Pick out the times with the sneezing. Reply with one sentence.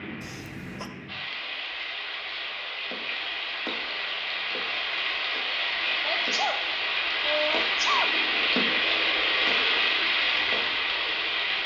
You can hear the sneezing from 0.2 to 0.9 s and from 6.0 to 8.2 s.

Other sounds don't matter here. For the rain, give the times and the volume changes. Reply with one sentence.
You can hear the rain from 0.0 to 11.6 s, getting louder.